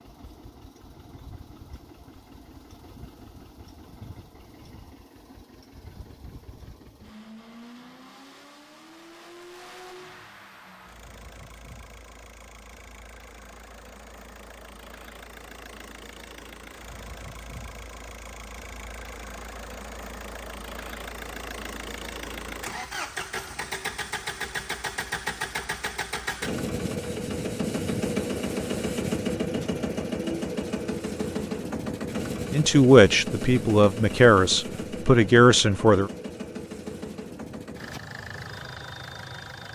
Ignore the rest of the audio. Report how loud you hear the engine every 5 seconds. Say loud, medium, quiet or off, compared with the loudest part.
quiet, quiet, quiet, quiet, medium, loud, loud, medium.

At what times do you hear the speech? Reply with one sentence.
The speech can be heard from 32.5 to 36.1 s.